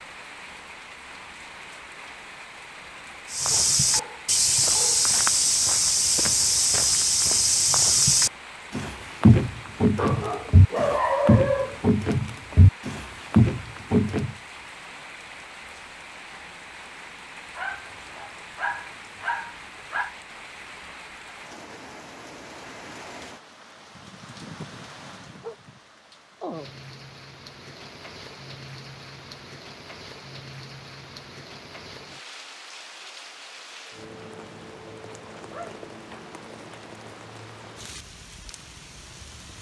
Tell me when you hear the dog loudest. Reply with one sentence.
The loudest moment of the dog is at 11 seconds.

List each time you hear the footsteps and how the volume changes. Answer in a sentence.
You can hear the footsteps from 3.3 to 14.3 s, at a steady volume.